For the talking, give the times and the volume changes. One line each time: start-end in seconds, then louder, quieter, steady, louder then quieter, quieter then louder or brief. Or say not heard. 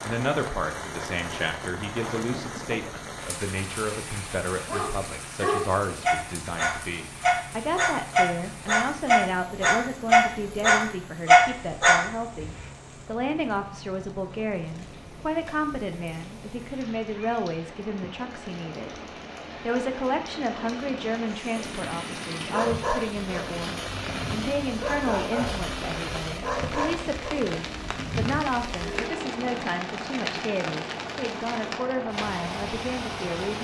0.0-18.9 steady
19.6-33.5 steady.